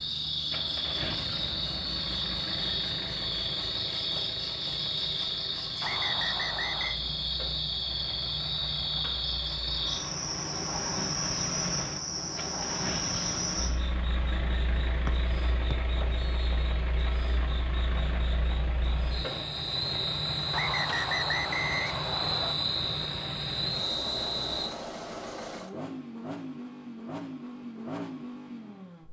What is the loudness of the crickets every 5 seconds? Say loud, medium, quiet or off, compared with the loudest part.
loud, loud, loud, medium, loud, off.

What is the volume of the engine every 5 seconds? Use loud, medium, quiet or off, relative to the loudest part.
loud, medium, loud, loud, loud, loud.